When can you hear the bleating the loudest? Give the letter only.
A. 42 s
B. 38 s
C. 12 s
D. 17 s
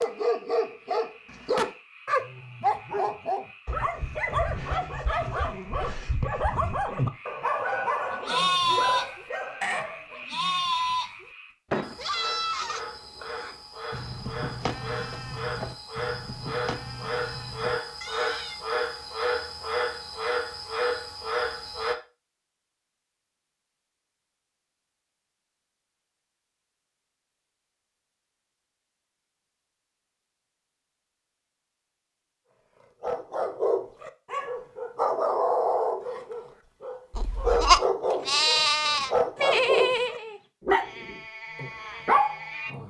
B.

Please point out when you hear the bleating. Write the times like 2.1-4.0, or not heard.
8.2-18.6, 37.1-42.8.